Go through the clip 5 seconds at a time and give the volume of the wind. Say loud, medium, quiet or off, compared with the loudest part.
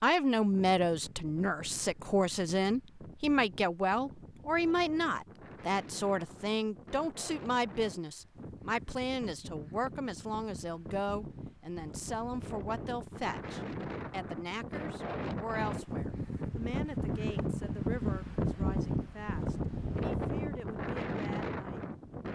quiet, quiet, medium, loud, loud.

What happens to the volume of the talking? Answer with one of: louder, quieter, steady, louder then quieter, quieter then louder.
quieter.